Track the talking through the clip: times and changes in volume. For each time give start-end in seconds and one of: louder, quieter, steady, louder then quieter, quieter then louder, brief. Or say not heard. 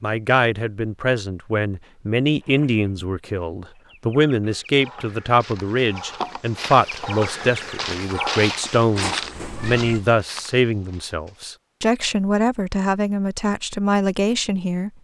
0.0-14.9 steady.